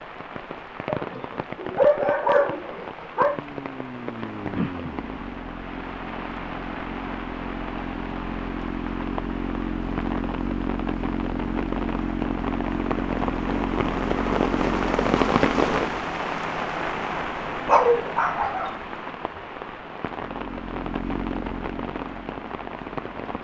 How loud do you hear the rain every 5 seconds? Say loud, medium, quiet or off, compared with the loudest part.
medium, medium, loud, loud, medium.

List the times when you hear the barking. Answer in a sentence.
The barking can be heard from 0.9 to 3.4 s and from 17.6 to 18.7 s.